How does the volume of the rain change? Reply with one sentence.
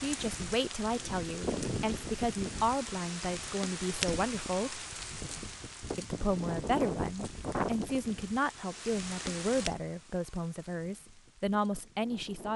The volume of the rain goes down.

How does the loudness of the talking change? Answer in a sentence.
The loudness of the talking stays about the same.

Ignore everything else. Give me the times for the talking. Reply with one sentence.
You can hear the talking from 0.0 to 4.8 s and from 6.0 to 12.5 s.